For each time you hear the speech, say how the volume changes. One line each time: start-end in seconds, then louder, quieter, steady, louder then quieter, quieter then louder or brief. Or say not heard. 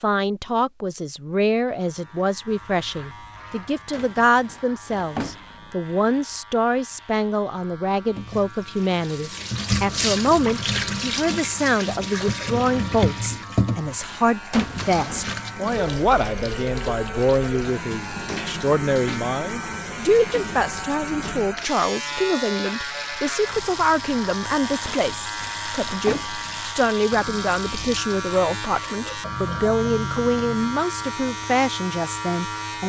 0.0-32.8 steady.